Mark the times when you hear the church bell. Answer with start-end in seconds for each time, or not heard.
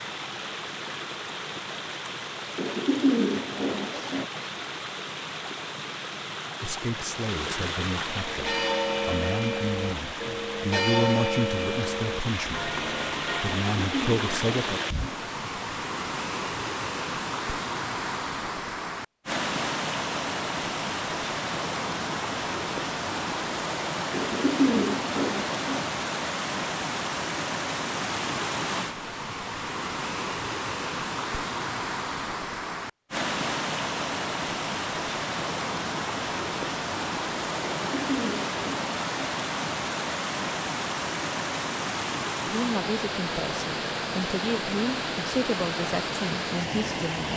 8.1-13.6.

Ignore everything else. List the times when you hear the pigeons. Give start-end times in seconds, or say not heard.
2.5-4.2, 13.7-15.2, 24.1-25.9, 37.6-39.1.